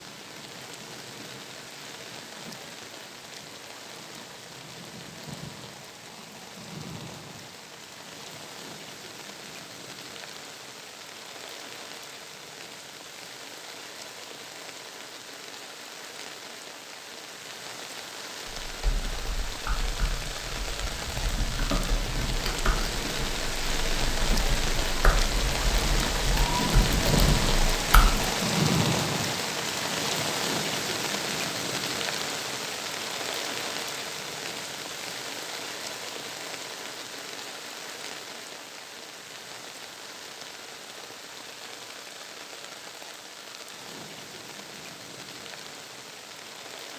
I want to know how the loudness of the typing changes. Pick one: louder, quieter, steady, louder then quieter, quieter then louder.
louder.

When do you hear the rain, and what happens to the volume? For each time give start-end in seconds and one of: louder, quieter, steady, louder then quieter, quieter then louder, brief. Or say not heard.
0.0-46.9 louder then quieter.